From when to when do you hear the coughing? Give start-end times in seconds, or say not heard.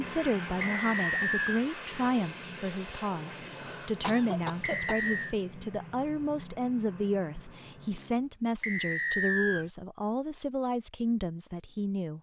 3.5-5.0.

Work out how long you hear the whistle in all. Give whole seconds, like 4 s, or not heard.
3 s.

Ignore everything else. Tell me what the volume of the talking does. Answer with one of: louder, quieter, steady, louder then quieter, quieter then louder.
steady.